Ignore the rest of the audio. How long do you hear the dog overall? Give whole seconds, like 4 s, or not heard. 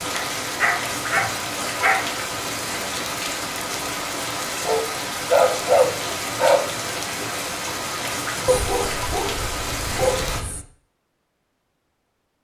6 s.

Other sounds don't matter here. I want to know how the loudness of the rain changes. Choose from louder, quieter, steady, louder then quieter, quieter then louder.
steady.